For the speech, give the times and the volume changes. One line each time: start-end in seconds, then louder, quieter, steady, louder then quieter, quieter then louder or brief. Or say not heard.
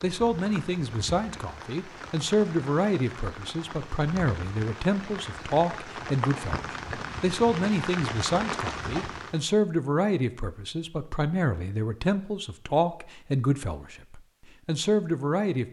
0.0-15.6 steady.